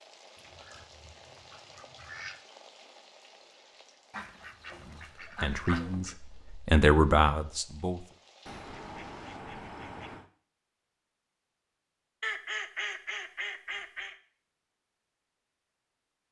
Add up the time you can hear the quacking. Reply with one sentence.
You can hear the quacking for 8 seconds altogether.